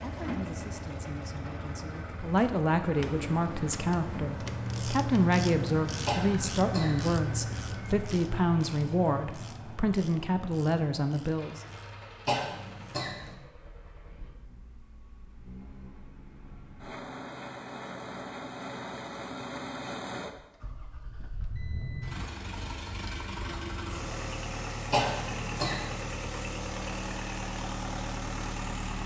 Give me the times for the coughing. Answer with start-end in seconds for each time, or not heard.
6.0-7.2, 12.2-13.3, 24.9-26.0.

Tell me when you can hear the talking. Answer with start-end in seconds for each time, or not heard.
0.0-11.6.